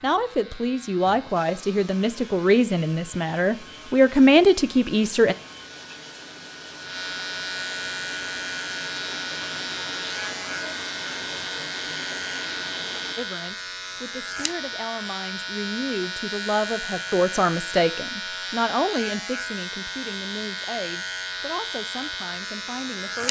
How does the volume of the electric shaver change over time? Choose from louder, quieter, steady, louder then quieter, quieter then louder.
louder.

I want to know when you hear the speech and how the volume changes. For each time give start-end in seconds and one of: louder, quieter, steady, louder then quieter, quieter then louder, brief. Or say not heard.
0.0-5.3 louder
13.2-23.2 louder then quieter.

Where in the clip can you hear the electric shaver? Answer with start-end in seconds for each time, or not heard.
0.0-23.2.